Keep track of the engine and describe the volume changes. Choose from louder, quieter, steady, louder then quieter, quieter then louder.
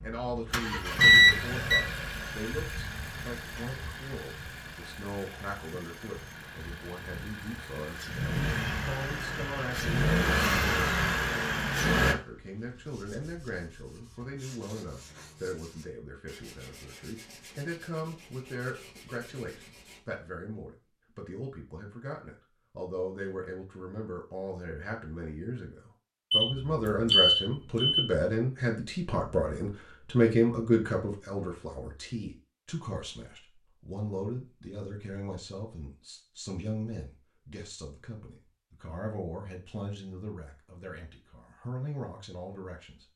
quieter then louder.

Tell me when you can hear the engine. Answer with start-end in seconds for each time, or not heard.
0.0-12.2.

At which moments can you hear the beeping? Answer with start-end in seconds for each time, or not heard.
1.0-1.8, 26.3-28.0.